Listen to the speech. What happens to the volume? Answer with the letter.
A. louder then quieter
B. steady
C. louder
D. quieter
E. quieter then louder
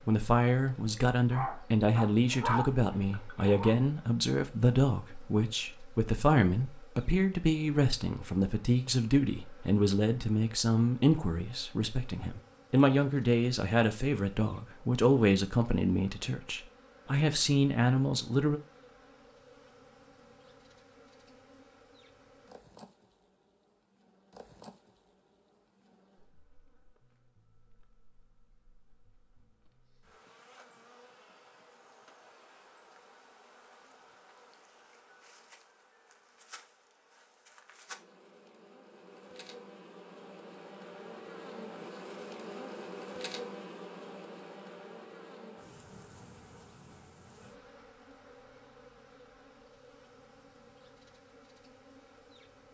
B.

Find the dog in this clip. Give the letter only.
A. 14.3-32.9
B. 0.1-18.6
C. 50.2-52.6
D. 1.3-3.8
D.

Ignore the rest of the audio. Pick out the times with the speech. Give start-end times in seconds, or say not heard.
0.1-18.6.